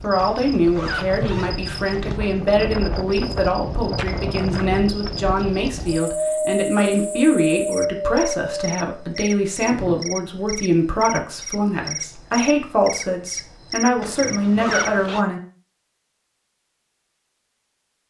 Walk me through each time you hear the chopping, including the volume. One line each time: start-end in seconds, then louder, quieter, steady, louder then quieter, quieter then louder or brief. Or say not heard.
not heard.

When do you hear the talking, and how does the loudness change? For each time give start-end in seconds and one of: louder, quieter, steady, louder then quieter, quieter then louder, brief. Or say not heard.
0.0-15.4 steady.